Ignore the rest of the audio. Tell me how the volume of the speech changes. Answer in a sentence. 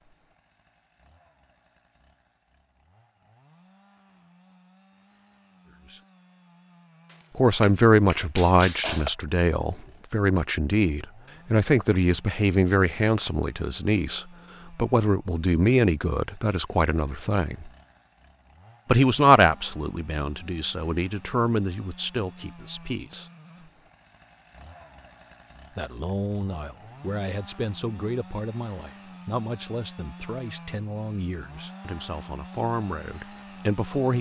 The volume of the speech goes down.